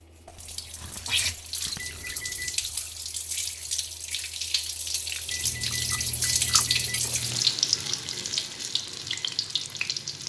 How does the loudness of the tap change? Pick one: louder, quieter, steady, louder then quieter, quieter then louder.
louder then quieter.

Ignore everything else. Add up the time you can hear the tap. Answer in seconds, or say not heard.
10 s.